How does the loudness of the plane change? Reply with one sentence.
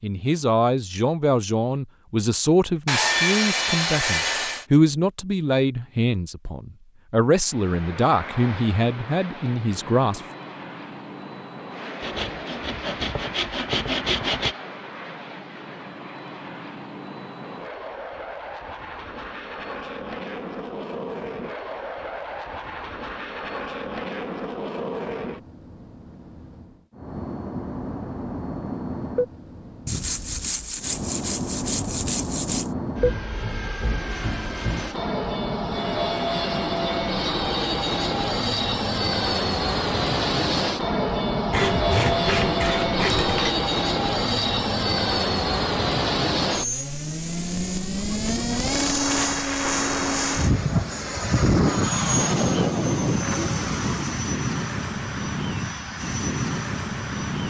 The loudness of the plane goes up.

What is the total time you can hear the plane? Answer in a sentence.
The plane can be heard for 50 seconds in total.